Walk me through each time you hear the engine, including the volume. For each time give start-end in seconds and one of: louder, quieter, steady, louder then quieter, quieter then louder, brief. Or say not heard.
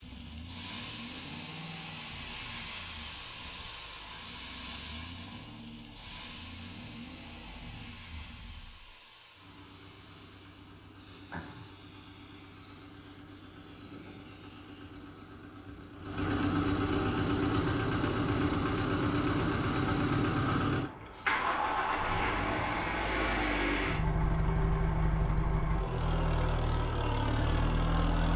0.0-28.3 louder.